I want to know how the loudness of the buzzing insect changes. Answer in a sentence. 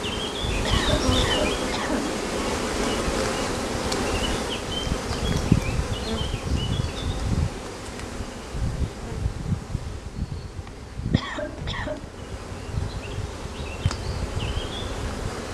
The loudness of the buzzing insect goes down.